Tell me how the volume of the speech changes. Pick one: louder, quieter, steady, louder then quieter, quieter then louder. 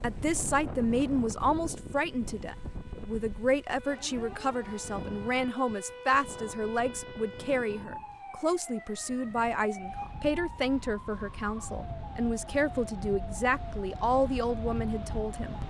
steady.